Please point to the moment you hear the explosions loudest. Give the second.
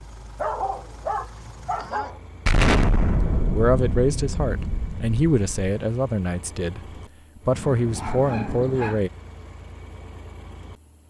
3 s.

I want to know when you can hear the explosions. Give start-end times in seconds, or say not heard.
2.5-5.7.